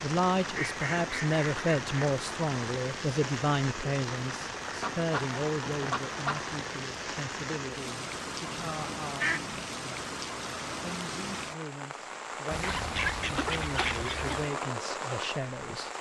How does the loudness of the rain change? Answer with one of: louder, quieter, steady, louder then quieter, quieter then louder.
steady.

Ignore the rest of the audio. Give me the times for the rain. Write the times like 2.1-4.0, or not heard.
0.0-15.9.